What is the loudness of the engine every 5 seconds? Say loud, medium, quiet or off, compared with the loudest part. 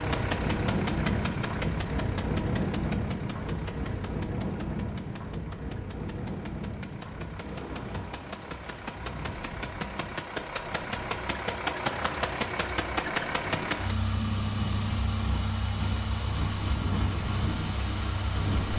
medium, medium, loud, loud.